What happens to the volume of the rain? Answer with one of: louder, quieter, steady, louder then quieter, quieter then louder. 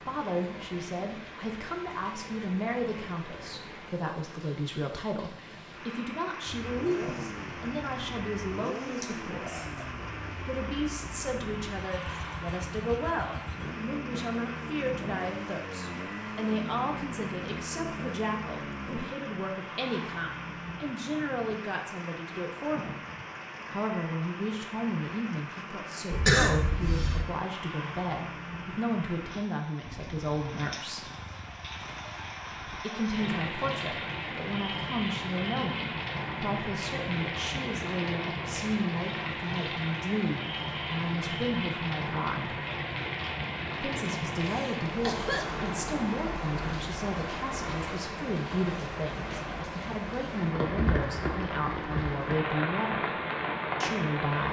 louder.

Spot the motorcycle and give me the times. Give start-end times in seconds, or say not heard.
6.5-19.1, 29.8-32.9.